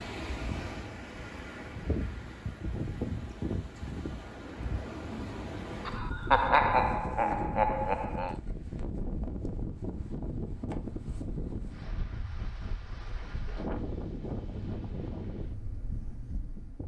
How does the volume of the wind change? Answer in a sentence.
The loudness of the wind stays about the same.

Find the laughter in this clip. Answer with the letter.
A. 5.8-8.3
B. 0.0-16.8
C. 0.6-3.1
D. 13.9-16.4
A.